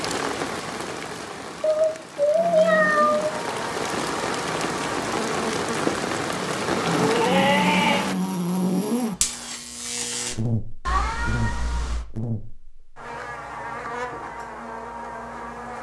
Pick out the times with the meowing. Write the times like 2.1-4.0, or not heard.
1.6-3.4, 6.7-8.1, 10.8-12.1.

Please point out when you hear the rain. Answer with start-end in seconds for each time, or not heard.
0.0-8.2.